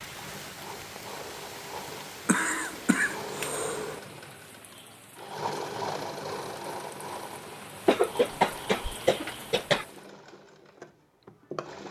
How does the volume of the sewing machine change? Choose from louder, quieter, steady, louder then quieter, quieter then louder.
louder then quieter.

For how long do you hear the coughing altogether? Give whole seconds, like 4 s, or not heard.
4 s.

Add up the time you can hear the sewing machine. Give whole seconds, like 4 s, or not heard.
12 s.